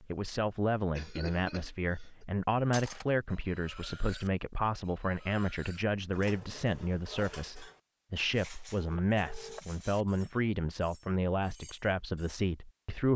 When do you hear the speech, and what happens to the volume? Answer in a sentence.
You can hear the speech from 0.0 to 13.1 s, at a steady volume.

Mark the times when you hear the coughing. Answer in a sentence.
The coughing can be heard from 0.9 to 2.2 s.